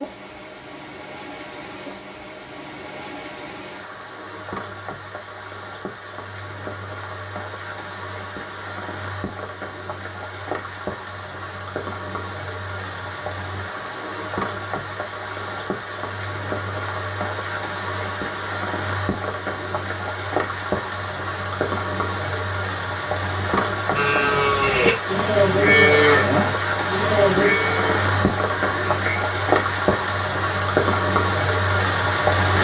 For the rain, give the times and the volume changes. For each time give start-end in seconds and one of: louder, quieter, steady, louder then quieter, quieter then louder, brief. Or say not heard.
0.0-32.5 louder.